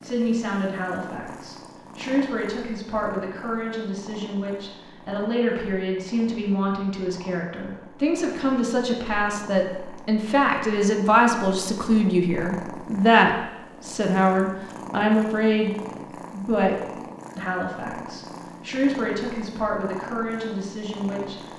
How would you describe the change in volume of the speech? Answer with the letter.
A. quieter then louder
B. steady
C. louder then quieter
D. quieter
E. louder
C.